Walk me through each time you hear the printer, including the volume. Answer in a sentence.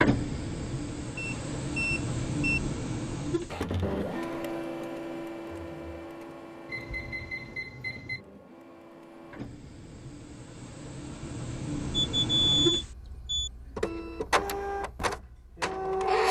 The printer can be heard from 0.0 to 16.2 s, getting quieter then louder.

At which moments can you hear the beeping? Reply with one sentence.
You can hear the beeping from 1.1 to 2.6 s, from 6.7 to 8.2 s and from 12.1 to 13.5 s.